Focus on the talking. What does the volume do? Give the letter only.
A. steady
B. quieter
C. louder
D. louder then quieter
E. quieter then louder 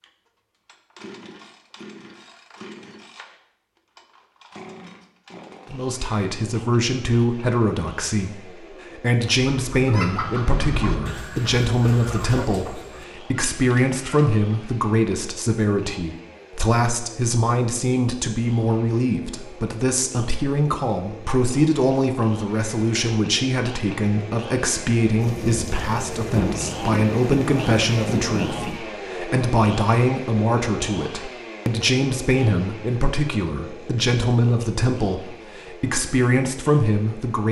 A.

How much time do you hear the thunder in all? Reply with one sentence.
You can hear the thunder for 4 seconds altogether.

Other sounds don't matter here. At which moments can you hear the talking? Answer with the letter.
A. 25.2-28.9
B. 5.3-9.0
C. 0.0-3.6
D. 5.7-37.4
D.